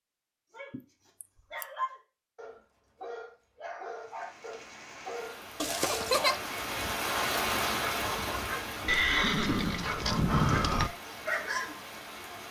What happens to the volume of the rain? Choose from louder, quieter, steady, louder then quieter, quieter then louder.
louder then quieter.